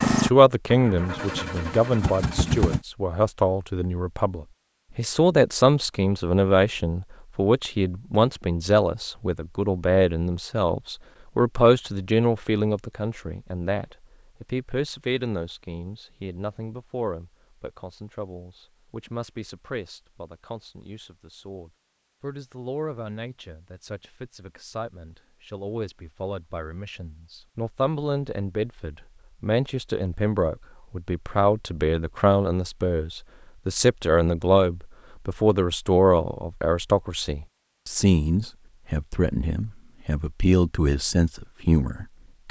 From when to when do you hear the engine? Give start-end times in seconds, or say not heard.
0.0-2.8.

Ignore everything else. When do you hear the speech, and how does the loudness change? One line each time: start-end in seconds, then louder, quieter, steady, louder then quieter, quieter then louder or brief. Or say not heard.
0.0-42.4 quieter then louder.